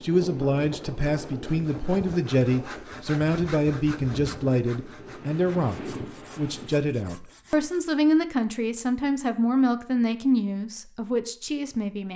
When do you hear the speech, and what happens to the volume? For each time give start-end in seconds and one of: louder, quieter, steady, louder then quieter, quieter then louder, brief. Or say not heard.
0.0-12.1 steady.